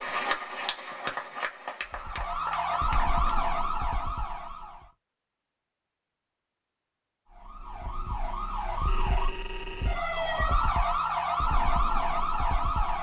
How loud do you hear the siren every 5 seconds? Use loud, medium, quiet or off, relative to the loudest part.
loud, medium, loud.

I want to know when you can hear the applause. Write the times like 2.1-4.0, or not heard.
0.0-3.4.